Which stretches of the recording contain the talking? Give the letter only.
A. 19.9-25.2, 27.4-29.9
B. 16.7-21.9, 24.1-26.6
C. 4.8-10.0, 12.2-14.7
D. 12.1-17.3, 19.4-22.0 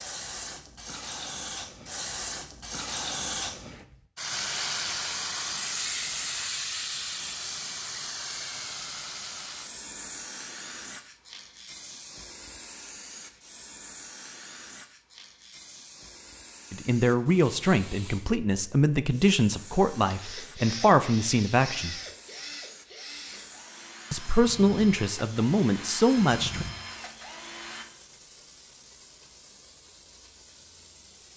B.